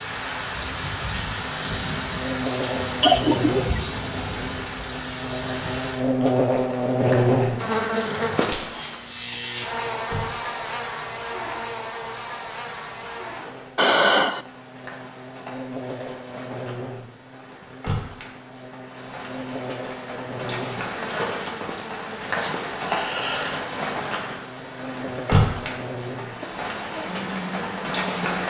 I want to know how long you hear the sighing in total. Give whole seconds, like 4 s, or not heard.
3 s.